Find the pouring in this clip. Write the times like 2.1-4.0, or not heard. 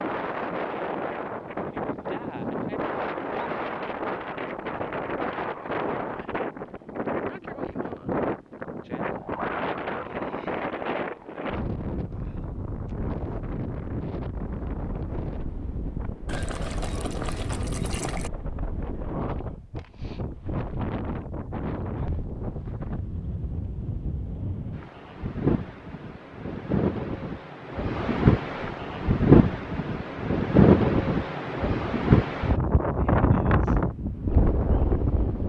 16.2-18.3.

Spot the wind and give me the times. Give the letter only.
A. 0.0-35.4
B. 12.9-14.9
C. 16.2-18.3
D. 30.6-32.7
A.